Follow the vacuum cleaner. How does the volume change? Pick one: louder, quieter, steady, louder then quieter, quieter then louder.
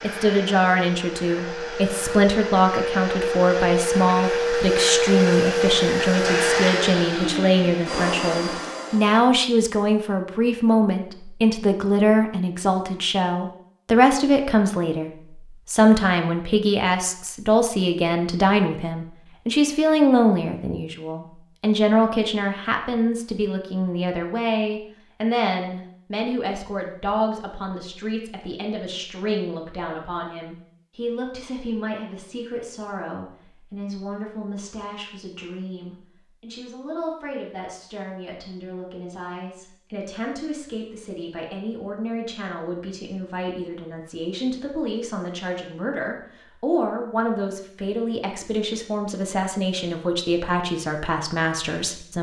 louder then quieter.